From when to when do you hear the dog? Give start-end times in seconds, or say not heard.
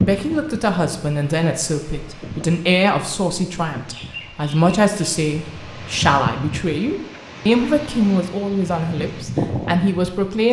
not heard.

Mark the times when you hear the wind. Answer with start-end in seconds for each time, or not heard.
0.0-10.4.